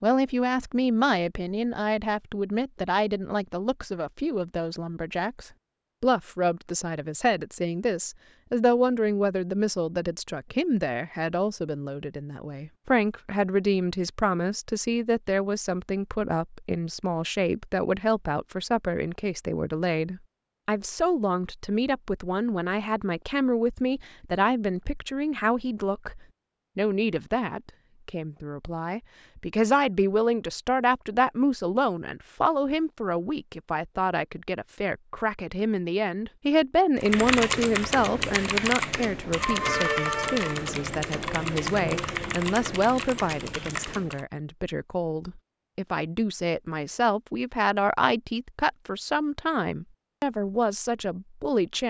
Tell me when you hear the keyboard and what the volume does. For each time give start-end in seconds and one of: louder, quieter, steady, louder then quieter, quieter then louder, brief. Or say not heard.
37.0-44.2 quieter.